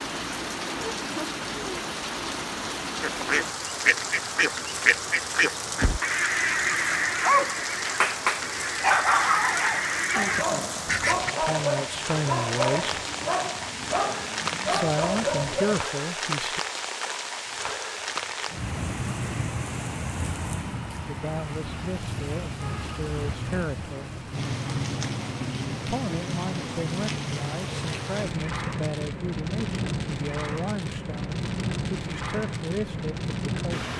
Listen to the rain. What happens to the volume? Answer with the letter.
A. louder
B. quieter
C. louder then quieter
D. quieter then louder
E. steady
E.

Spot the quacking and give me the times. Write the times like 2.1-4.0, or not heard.
3.0-11.3.